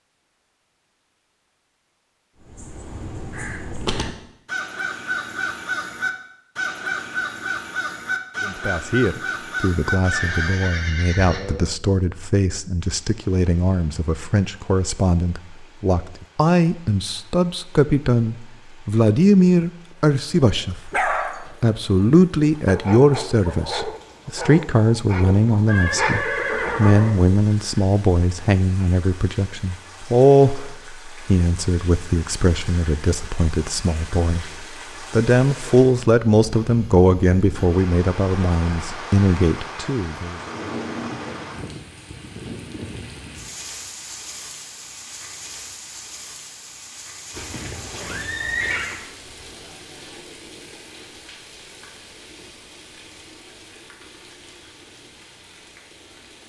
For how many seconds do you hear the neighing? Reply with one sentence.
The neighing can be heard for 5 seconds in total.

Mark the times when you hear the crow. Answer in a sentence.
The crow can be heard from 2.4 to 10.8 s.